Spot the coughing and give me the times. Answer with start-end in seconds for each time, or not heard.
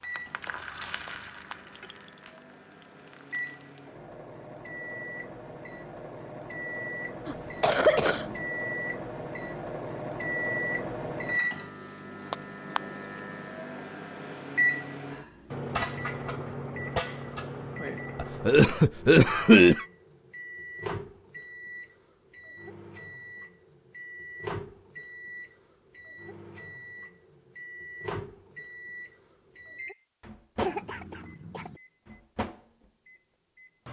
7.2-8.4, 18.1-19.9, 30.6-31.8.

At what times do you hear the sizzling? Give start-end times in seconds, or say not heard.
0.0-3.8.